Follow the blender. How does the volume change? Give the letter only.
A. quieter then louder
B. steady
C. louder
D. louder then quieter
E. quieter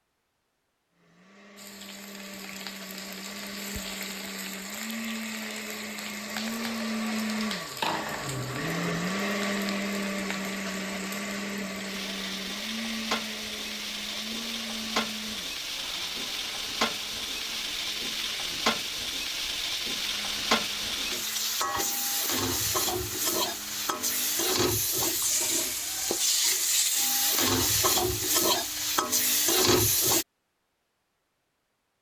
D.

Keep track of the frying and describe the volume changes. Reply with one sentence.
The volume of the frying goes up.